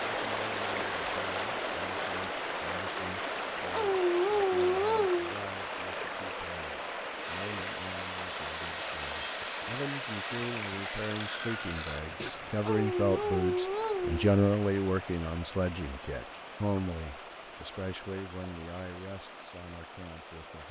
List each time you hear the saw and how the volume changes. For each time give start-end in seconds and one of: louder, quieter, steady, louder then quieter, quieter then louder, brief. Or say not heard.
7.2-12.3 steady.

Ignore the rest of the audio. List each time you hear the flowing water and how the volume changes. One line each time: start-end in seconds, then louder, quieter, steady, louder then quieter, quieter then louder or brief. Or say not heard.
0.0-20.6 quieter.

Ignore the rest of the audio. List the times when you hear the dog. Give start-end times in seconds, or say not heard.
3.7-5.3, 12.7-14.3.